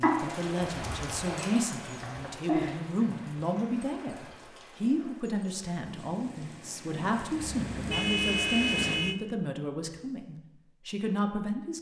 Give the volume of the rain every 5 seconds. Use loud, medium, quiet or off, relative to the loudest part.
loud, medium, off.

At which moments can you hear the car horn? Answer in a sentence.
You can hear the car horn from 7.3 to 9.2 s.